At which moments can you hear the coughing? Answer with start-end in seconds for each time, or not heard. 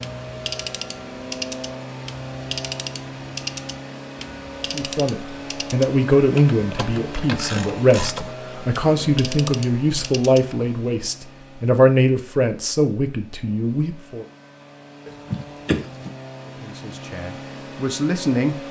15.1-16.1.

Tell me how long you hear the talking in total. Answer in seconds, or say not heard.
12 s.